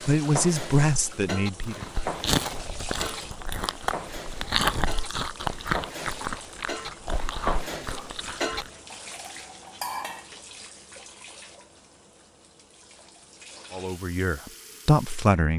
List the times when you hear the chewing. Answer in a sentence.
You can hear the chewing from 1.6 to 8.7 s.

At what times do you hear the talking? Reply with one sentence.
The talking can be heard from 0.1 to 1.8 s and from 13.7 to 15.5 s.